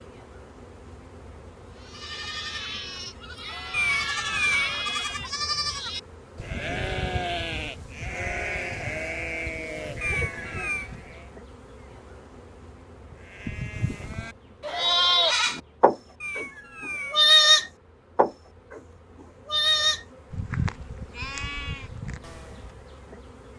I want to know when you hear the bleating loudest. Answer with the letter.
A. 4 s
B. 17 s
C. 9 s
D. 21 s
B.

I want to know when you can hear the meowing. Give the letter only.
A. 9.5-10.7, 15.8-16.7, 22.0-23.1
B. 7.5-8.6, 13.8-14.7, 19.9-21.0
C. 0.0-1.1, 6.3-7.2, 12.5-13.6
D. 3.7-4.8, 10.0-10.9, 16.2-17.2
D.